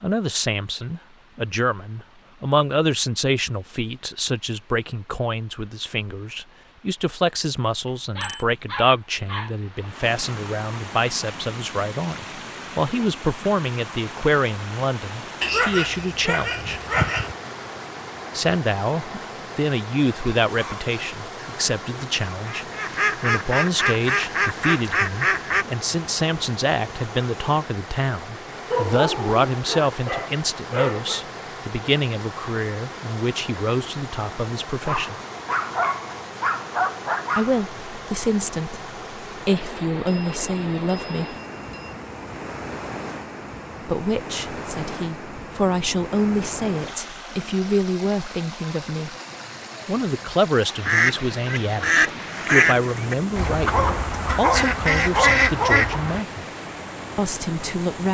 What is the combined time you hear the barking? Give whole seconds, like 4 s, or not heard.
11 s.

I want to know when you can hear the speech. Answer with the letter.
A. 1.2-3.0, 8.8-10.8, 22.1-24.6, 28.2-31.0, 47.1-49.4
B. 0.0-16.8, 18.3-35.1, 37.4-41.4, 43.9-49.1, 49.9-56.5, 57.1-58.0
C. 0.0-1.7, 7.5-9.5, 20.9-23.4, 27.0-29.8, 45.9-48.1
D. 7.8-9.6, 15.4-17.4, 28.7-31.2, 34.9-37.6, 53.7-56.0
B.